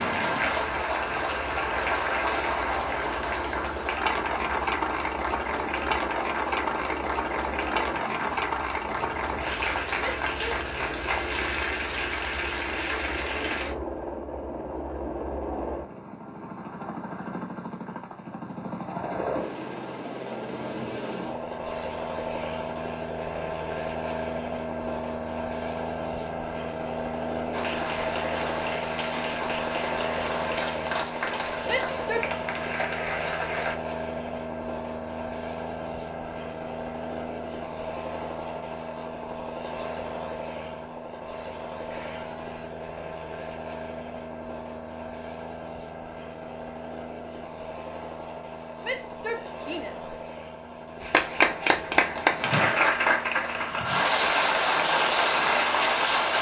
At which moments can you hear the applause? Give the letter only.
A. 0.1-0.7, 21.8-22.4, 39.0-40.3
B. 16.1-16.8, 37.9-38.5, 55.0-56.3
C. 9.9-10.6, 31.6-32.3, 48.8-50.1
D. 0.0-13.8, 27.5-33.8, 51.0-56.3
D.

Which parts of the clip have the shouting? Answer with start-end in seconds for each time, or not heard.
9.9-10.6, 31.6-32.3, 48.8-50.1.